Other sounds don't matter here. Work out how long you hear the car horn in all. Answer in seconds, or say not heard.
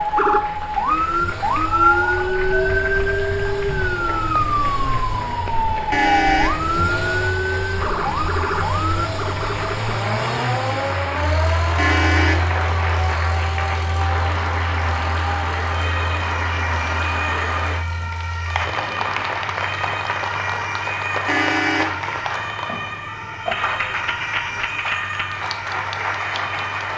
2 s.